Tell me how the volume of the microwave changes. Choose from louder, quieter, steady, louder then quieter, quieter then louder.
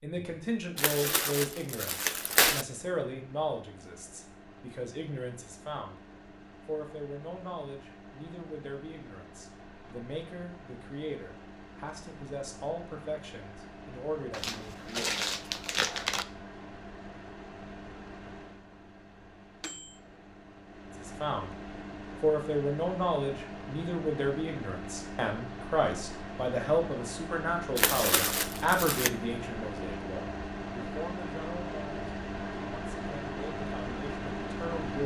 louder.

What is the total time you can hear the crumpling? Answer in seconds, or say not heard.
5 s.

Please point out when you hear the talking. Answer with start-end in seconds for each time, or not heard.
0.0-6.0, 6.7-15.2, 21.0-21.6, 22.2-35.0.